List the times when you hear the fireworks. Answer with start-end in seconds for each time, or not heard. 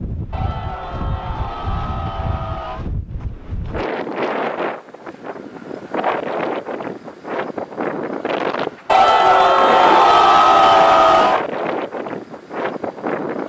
not heard.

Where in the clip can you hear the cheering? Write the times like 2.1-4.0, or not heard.
0.3-2.9, 8.8-11.4.